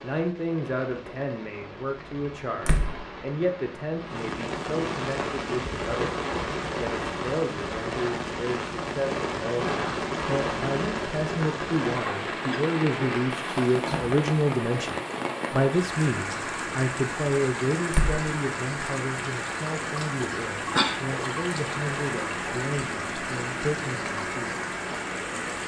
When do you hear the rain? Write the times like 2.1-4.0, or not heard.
0.0-25.6.